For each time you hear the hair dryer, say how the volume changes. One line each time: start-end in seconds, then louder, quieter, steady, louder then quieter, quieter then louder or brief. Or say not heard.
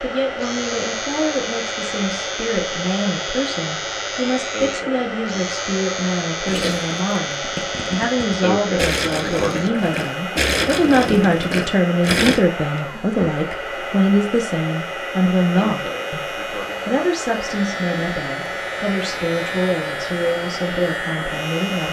0.0-21.8 steady.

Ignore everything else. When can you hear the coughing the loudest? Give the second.
9 s.